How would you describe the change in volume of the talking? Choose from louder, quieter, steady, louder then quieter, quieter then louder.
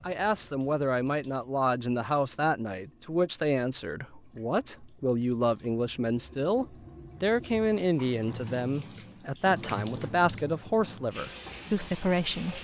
steady.